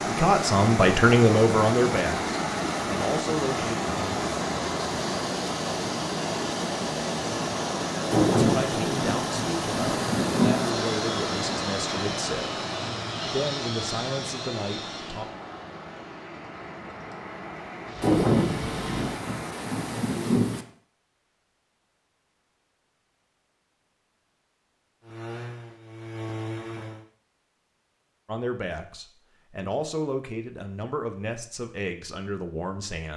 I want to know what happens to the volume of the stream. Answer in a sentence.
The volume of the stream goes down.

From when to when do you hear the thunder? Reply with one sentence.
The thunder can be heard from 8.1 to 10.7 s and from 18.0 to 20.6 s.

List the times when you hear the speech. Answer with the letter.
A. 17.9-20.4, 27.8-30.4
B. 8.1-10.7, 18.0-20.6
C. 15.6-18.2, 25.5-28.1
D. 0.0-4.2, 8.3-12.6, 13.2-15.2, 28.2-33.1
D.